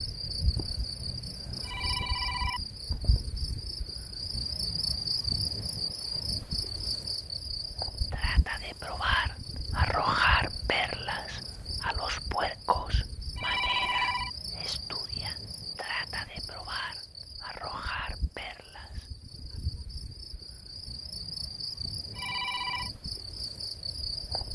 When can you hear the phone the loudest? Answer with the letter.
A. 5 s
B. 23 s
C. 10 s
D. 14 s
D.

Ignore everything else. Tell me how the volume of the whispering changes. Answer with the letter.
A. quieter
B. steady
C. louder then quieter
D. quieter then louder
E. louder
A.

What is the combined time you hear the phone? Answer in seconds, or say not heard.
3 s.